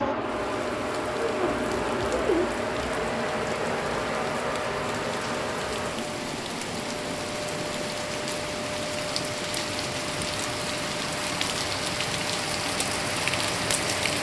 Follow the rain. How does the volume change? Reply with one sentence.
The loudness of the rain goes up.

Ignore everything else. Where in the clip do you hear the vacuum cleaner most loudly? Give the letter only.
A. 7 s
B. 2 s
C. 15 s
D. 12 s
B.